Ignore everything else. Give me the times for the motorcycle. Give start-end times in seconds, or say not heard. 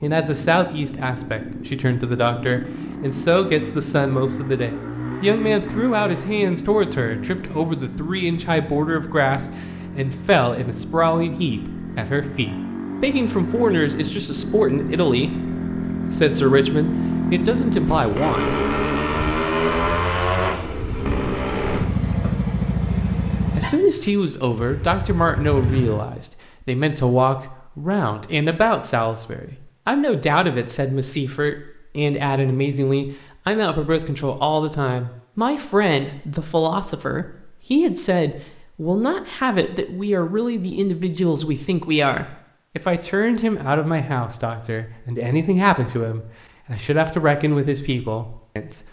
0.0-26.1.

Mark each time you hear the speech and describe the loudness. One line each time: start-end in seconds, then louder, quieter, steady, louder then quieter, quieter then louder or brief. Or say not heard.
0.0-18.4 steady
23.6-48.8 steady.